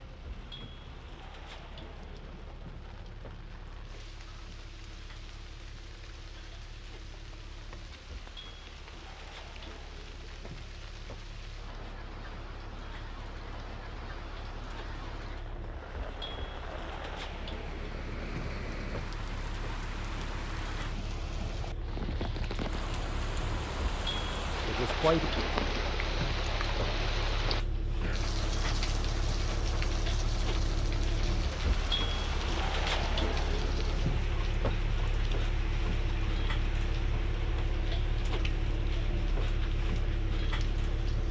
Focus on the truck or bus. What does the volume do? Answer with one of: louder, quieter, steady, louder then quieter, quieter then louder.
louder.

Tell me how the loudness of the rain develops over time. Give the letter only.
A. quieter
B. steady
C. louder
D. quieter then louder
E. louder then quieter
E.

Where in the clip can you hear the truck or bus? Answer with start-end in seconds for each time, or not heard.
0.0-41.2.